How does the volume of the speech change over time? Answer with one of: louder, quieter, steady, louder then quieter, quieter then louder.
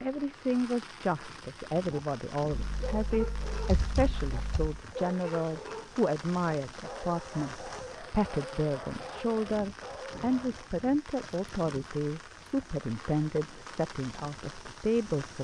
steady.